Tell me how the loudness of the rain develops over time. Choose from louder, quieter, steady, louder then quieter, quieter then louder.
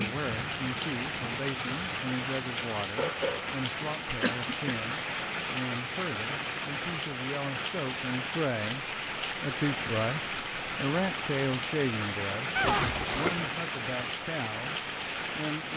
steady.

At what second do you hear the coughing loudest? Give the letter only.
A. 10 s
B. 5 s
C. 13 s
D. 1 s
C.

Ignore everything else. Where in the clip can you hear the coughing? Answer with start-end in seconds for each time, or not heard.
4.2-4.8, 12.6-13.5.